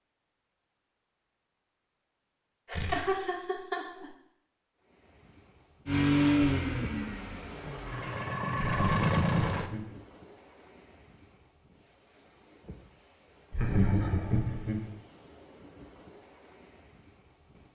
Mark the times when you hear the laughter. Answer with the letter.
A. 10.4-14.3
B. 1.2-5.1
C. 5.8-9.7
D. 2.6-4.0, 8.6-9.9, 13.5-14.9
D.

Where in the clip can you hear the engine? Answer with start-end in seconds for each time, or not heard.
5.8-9.7.